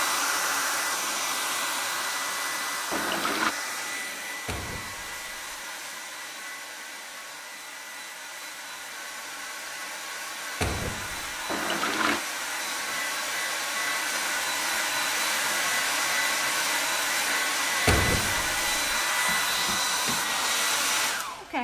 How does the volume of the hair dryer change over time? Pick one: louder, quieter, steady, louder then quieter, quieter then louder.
quieter then louder.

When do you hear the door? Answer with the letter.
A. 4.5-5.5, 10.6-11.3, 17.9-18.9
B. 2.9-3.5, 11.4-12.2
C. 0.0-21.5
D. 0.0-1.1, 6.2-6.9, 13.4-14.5
A.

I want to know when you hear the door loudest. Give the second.
18 s.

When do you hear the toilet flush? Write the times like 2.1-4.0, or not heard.
2.9-3.5, 11.4-12.2.